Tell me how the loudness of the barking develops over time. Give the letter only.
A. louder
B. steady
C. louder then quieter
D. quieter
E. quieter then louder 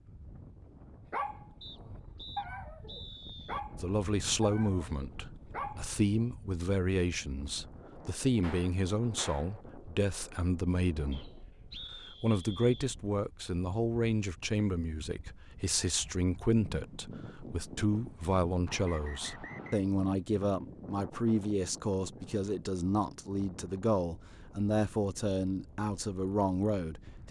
C.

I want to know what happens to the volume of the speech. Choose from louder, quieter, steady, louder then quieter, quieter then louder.
steady.